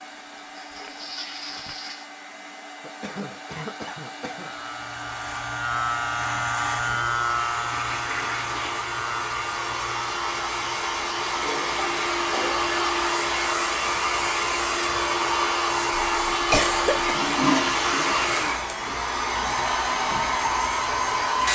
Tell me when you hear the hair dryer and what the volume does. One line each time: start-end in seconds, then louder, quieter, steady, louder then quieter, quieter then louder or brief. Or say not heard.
0.0-21.5 louder.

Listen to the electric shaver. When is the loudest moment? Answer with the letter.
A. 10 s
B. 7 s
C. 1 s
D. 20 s
B.